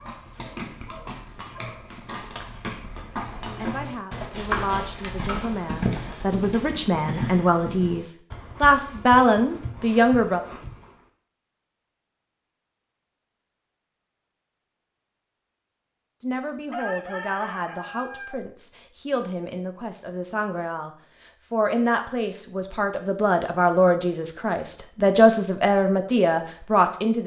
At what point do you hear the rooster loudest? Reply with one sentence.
The volume of the rooster peaks at 17 seconds.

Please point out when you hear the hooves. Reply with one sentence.
The hooves can be heard from 0.0 to 11.0 s.